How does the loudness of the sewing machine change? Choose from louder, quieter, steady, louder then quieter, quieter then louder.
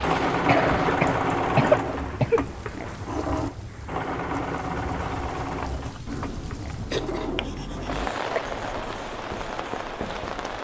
quieter.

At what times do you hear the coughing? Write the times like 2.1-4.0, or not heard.
0.5-2.5, 6.9-8.4.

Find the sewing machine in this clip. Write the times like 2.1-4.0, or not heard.
0.0-10.5.